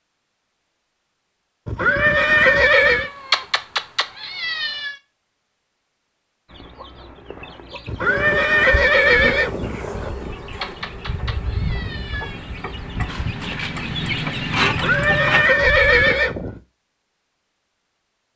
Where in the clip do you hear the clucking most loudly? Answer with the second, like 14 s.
15 s.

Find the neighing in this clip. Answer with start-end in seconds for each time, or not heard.
1.6-3.1, 7.8-10.4, 14.7-16.6.